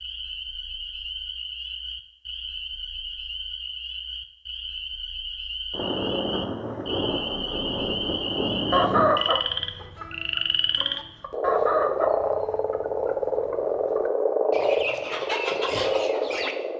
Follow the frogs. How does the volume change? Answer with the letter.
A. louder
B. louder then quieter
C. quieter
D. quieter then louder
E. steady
A.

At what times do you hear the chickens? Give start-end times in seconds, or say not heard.
8.7-16.6.